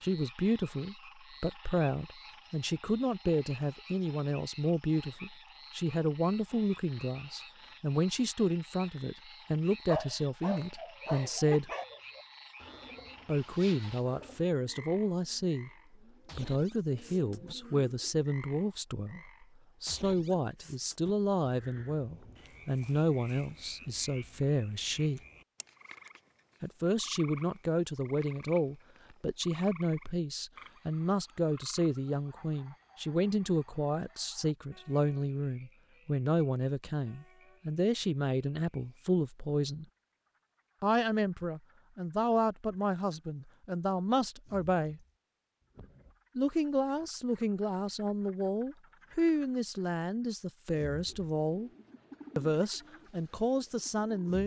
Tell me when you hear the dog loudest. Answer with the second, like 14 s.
10 s.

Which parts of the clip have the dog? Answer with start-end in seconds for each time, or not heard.
9.8-11.8.